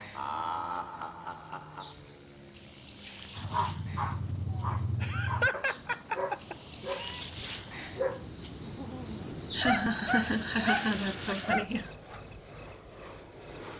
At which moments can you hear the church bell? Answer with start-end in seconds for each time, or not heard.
not heard.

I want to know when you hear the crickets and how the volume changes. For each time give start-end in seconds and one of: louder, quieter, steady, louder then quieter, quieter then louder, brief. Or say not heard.
0.0-13.7 louder then quieter.